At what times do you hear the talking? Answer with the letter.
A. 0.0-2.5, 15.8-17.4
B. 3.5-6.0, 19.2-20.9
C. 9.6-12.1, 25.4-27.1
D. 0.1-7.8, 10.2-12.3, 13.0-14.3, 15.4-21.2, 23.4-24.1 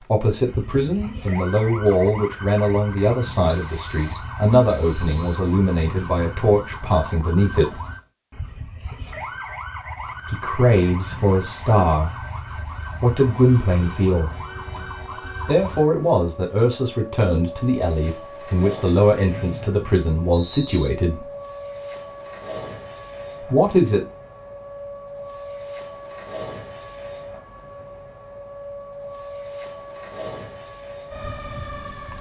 D.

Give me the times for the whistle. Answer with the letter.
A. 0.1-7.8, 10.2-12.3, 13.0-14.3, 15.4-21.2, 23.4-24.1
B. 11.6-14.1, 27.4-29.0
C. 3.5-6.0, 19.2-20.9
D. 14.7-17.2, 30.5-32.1
C.